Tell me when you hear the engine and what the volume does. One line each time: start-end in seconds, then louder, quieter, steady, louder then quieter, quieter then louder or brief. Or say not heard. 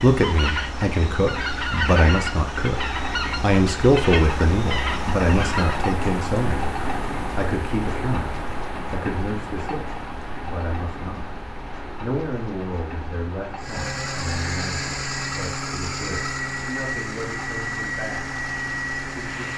13.6-19.5 steady.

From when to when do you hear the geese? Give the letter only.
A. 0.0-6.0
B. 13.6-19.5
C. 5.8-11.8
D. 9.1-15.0
A.